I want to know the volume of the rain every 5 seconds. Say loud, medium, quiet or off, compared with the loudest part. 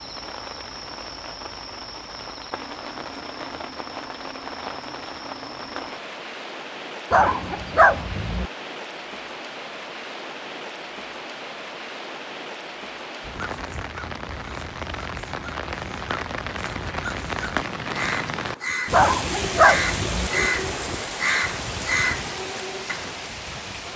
medium, medium, medium, loud, loud.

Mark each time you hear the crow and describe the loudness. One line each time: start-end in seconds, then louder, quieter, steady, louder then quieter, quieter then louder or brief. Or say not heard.
13.2-23.2 louder.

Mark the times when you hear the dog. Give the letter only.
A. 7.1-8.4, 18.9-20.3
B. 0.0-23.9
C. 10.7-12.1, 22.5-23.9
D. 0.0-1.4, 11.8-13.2
A.